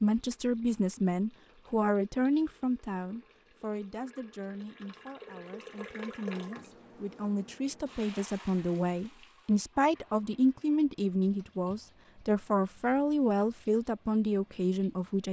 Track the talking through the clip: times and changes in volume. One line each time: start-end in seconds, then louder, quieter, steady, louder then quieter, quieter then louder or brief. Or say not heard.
0.0-15.2 quieter then louder.